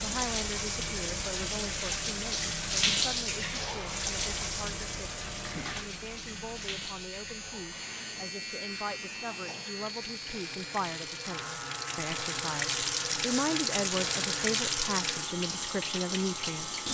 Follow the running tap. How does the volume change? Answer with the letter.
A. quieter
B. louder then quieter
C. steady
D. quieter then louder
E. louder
D.